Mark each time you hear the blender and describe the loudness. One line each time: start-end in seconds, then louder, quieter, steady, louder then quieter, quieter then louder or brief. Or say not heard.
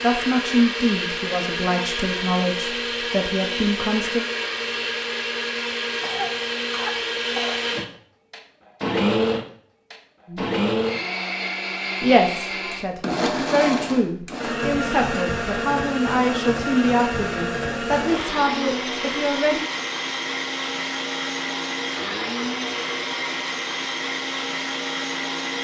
0.0-25.6 steady.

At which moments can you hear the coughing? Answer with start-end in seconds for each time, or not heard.
6.0-7.6.